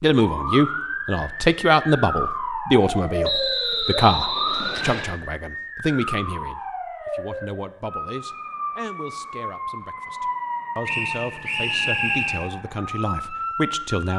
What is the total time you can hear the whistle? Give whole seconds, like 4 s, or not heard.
4 s.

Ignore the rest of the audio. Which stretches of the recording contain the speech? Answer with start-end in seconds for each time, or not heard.
0.0-14.1.